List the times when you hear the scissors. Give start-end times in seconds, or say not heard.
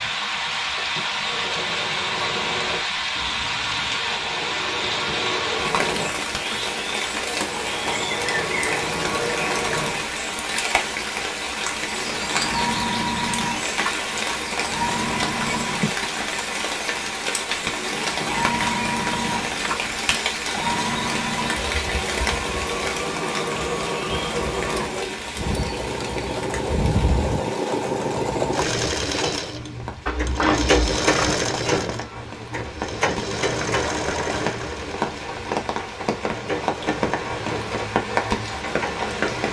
3.1-4.0, 19.4-19.9, 30.1-31.4.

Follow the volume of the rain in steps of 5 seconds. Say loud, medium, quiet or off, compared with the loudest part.
loud, loud, loud, loud, loud, medium, medium, loud.